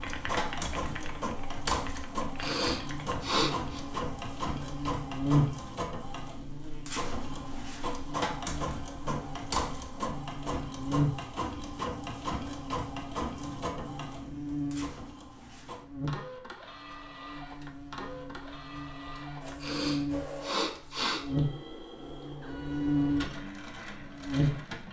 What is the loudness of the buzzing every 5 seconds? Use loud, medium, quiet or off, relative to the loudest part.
medium, loud, loud, medium, loud.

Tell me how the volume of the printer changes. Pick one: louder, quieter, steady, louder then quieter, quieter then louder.
quieter.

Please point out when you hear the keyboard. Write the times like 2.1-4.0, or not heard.
0.0-3.1.